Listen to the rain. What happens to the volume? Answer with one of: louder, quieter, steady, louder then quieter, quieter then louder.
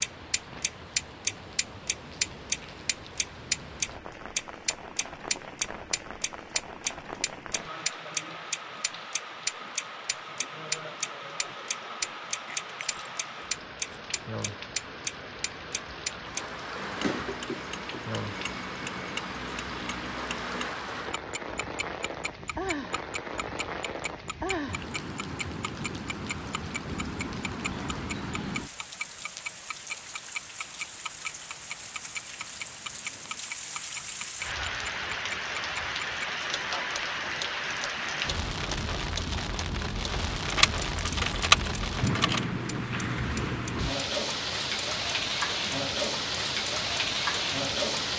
louder.